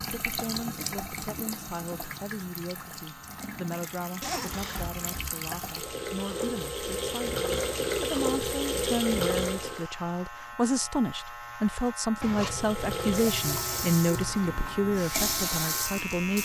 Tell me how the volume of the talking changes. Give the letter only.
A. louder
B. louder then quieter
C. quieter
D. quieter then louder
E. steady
A.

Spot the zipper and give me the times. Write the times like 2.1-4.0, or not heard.
4.2-5.3, 12.2-13.8.